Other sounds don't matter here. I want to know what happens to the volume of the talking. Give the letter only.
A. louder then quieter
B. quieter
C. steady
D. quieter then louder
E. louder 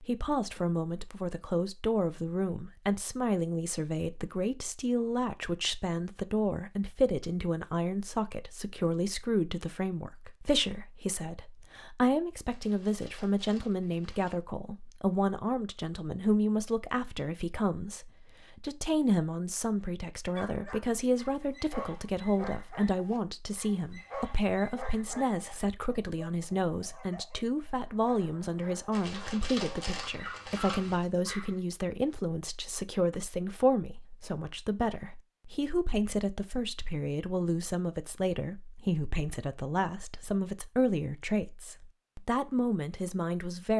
C.